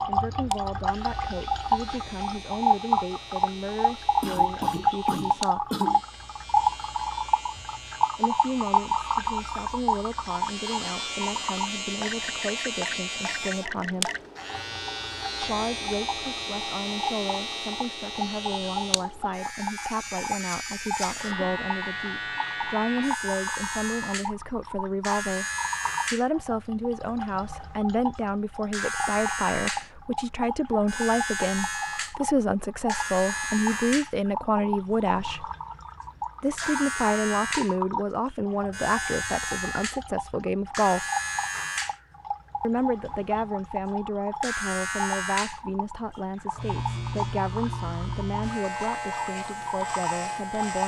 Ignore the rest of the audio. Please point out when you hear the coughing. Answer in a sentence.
The coughing can be heard from 4.2 to 6.0 s, from 21.1 to 21.6 s and from 36.0 to 37.1 s.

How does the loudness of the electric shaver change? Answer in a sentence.
The loudness of the electric shaver goes up.